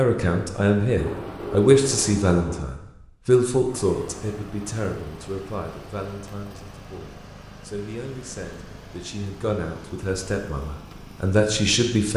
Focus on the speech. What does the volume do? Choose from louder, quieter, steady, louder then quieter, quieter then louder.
quieter then louder.